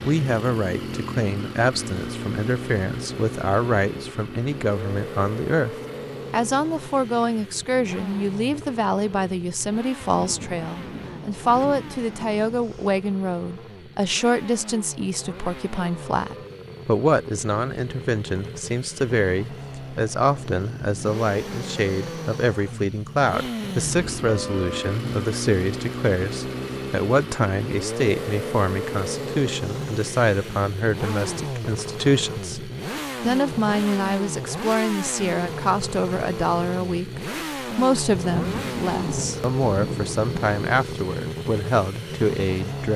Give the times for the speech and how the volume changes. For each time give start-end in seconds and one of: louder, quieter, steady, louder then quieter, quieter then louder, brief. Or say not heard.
0.0-42.9 steady.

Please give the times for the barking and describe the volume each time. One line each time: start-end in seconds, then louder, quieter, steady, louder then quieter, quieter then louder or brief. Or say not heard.
not heard.